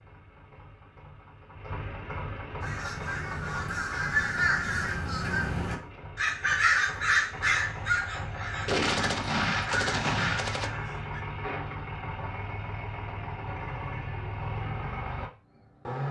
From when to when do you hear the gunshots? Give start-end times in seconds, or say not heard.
8.7-10.7.